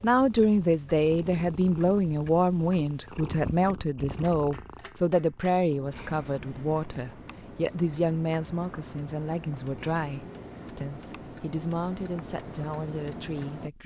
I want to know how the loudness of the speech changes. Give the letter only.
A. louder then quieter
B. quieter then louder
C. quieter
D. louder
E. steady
C.